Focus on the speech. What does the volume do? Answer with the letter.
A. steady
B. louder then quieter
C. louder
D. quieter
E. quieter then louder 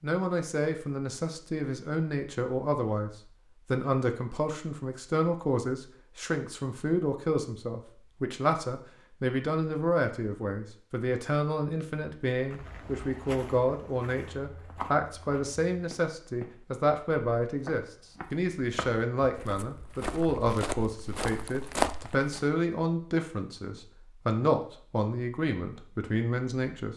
A.